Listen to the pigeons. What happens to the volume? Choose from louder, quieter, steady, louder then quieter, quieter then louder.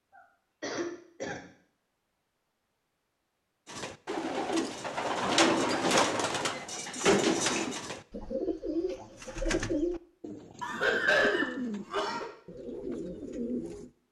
quieter.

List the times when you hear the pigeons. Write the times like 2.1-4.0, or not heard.
3.6-13.9.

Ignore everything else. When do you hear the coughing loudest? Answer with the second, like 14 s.
11 s.